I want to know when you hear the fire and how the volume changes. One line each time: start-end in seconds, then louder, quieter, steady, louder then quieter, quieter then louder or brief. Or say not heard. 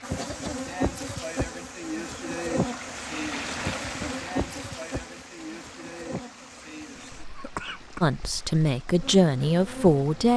not heard.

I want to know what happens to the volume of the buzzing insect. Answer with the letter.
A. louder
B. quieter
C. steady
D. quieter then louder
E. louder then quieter
B.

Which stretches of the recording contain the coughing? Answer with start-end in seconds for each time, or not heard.
0.1-0.7, 7.0-8.0.